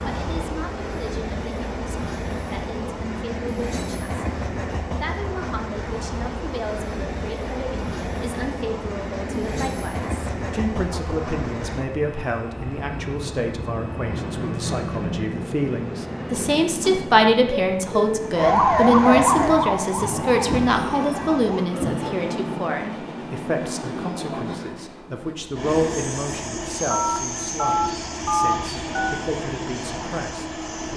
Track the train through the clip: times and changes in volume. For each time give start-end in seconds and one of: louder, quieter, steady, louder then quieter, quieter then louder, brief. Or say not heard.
0.0-30.9 steady.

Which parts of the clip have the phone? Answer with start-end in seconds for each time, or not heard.
9.3-9.8, 26.9-29.2.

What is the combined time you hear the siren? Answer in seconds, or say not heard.
3 s.